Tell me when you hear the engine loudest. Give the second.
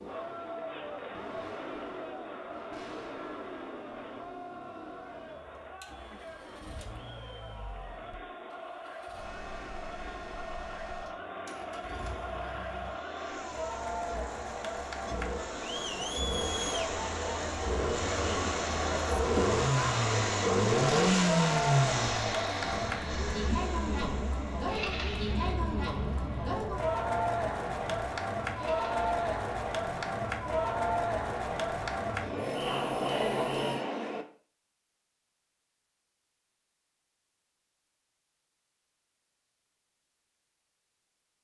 21 s.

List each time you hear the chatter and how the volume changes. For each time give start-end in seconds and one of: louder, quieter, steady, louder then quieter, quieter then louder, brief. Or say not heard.
0.0-34.2 louder.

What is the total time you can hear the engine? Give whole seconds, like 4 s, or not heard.
34 s.